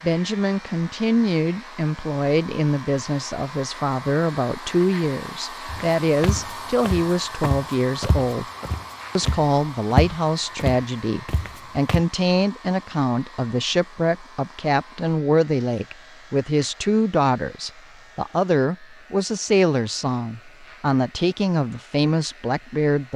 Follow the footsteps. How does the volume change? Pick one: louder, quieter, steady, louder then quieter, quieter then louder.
louder then quieter.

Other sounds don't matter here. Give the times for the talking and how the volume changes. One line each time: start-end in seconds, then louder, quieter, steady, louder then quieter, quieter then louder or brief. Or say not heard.
0.0-8.4 steady
9.2-23.1 steady.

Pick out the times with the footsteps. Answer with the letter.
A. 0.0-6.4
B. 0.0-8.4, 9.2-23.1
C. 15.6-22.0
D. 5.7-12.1
D.